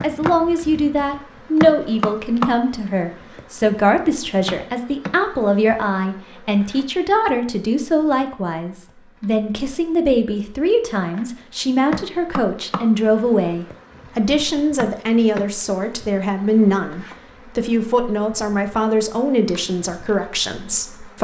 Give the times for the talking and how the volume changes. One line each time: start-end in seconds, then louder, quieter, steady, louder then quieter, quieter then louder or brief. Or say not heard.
0.0-21.1 steady.